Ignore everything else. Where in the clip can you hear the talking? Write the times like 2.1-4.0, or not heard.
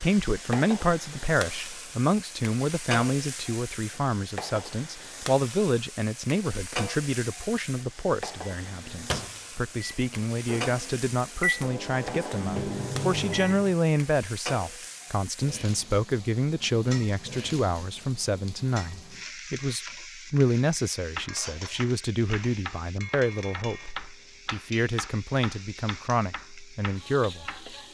0.0-27.6.